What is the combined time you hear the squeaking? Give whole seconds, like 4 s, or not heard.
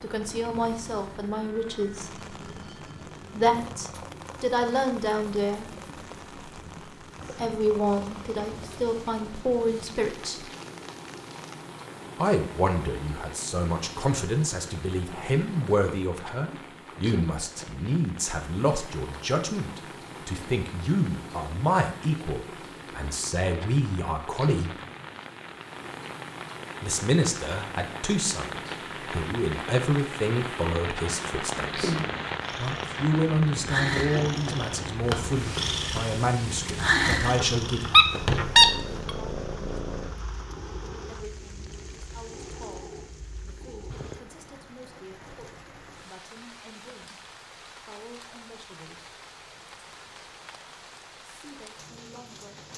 2 s.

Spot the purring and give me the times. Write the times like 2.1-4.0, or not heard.
0.0-44.3.